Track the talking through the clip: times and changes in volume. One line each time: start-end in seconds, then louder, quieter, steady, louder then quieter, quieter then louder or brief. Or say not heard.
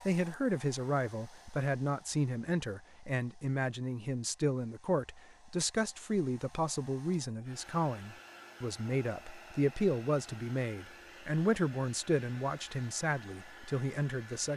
0.1-14.5 steady.